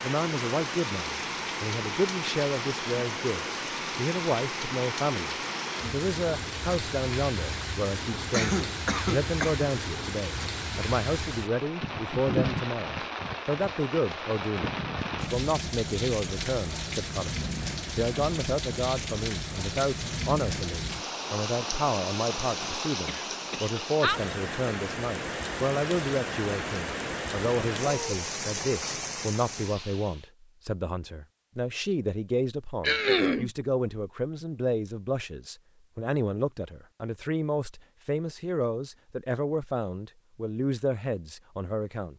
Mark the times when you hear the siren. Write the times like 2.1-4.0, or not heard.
not heard.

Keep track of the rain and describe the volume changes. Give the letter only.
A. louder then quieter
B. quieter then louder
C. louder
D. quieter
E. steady
E.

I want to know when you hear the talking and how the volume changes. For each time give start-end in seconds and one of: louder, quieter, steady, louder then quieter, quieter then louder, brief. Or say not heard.
0.0-42.1 steady.